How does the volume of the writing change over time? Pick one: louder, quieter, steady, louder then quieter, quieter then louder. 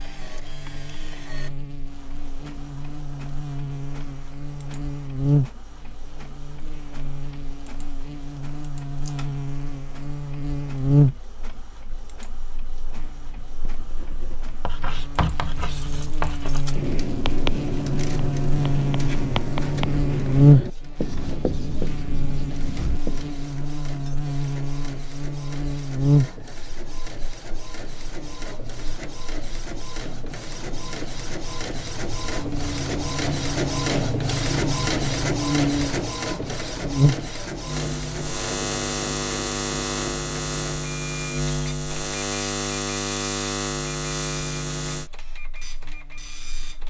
steady.